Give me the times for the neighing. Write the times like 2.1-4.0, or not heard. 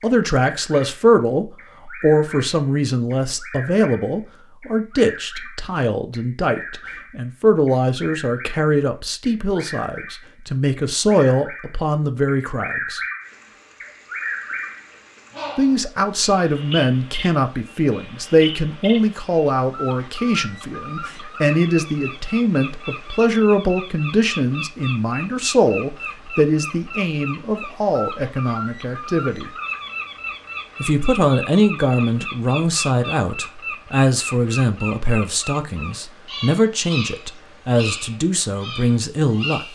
not heard.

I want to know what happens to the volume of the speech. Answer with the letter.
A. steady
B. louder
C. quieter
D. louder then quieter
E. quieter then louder
A.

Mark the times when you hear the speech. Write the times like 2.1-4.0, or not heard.
0.0-13.0, 15.6-29.5, 30.8-39.7.